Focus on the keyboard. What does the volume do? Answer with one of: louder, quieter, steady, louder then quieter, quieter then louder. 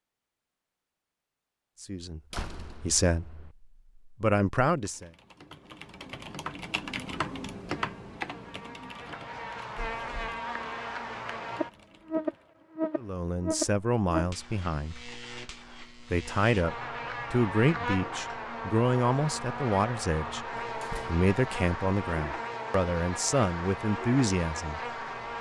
louder then quieter.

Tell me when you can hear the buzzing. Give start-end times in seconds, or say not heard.
7.7-25.3.